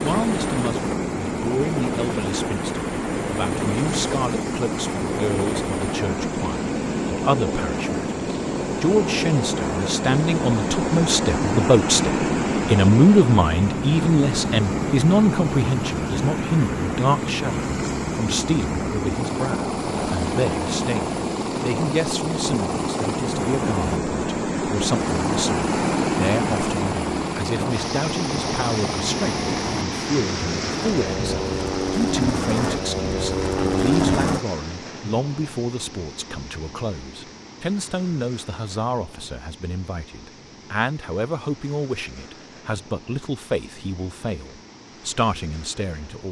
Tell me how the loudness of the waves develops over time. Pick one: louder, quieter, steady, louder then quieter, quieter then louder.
quieter.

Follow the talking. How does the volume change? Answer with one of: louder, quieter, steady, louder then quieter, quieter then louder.
louder then quieter.